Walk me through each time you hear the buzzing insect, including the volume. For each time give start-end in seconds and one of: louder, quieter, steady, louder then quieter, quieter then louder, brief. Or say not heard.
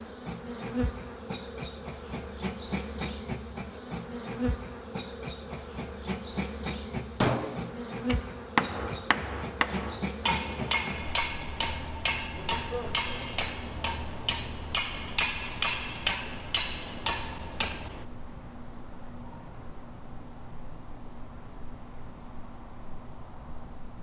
0.0-23.9 steady.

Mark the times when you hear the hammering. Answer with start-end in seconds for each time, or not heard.
7.2-18.1.